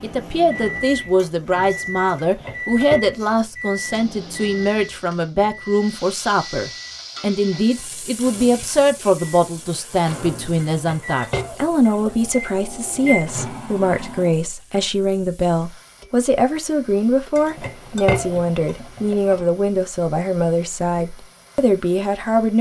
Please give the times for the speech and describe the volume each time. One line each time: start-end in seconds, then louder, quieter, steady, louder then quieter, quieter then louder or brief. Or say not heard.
0.0-22.5 steady.